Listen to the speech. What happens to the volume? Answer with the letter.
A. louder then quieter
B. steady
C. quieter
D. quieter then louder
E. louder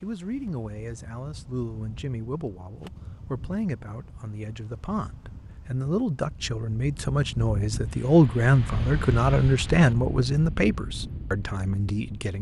E.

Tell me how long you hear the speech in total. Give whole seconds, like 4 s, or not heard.
12 s.